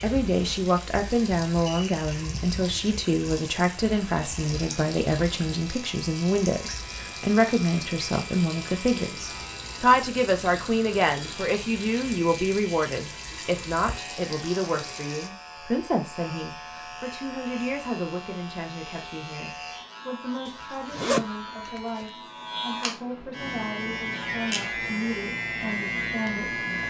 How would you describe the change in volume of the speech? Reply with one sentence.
The loudness of the speech goes down.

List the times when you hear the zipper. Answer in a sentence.
The zipper can be heard from 20.4 to 22.1 s.